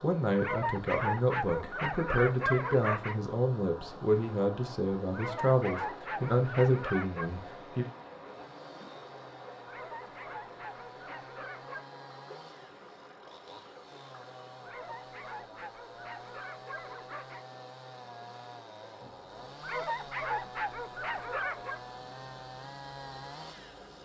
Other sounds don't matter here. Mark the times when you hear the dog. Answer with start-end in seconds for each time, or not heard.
0.3-3.1, 5.1-7.3, 9.7-11.8, 14.7-17.4, 19.6-21.8.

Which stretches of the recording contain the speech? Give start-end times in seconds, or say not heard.
0.0-7.8.